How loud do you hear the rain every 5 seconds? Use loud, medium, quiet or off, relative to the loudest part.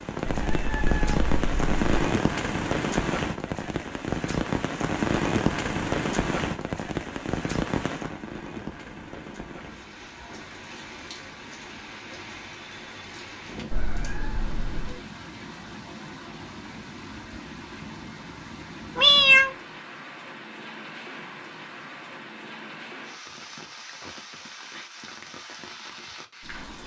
loud, loud, quiet, quiet, quiet, quiet.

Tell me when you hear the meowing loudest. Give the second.
19 s.